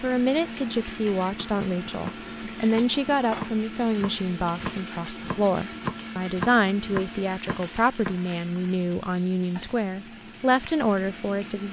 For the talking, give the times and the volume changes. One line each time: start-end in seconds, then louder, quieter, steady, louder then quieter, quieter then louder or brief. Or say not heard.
0.0-11.6 steady.